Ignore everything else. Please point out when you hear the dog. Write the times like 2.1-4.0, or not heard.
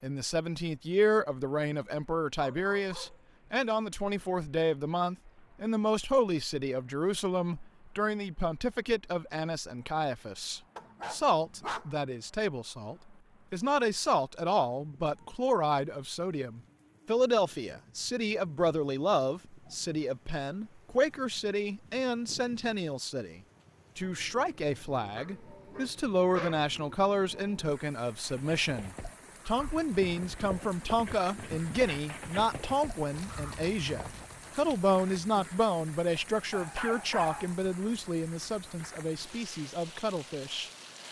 2.4-3.2, 10.8-11.9, 25.1-26.6, 36.5-37.5.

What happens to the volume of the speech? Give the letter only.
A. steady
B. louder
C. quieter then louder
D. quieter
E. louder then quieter
A.